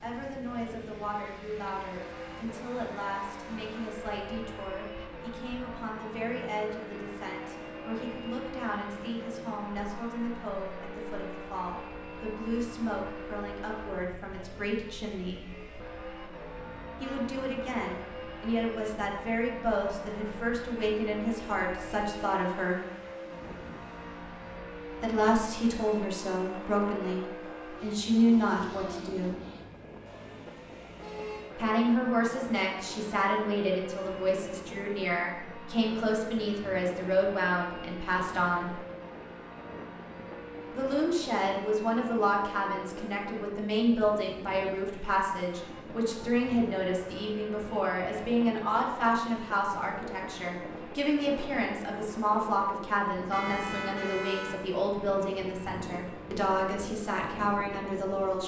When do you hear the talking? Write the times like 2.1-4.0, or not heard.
0.0-15.4, 17.0-22.8, 25.0-29.4, 31.6-38.8, 40.8-58.4.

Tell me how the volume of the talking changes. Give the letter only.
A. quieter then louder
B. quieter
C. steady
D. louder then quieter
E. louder
E.